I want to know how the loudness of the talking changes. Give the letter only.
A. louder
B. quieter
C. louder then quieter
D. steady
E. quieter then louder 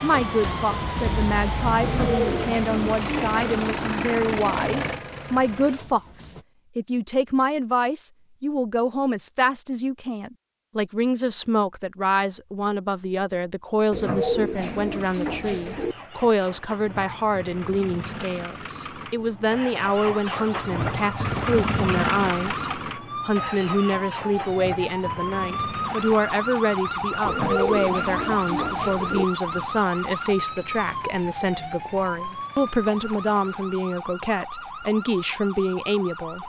D.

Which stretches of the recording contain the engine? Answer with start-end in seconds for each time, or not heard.
0.0-6.5, 14.9-33.7.